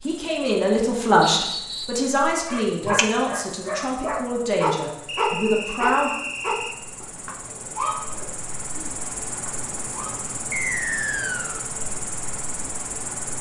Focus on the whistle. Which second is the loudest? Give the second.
11 s.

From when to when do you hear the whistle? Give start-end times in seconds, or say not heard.
1.4-2.0, 5.0-6.8, 10.5-11.7.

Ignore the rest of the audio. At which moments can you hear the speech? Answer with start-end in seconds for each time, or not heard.
0.0-6.2.